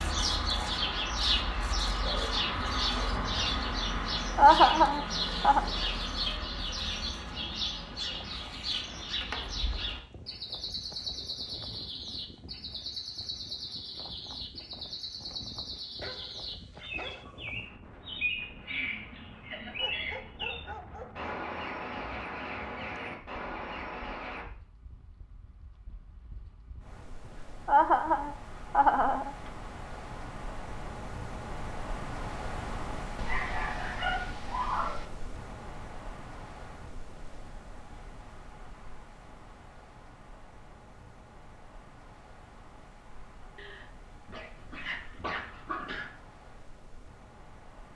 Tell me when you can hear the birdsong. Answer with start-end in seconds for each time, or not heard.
0.0-24.4.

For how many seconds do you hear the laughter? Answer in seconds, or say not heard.
3 s.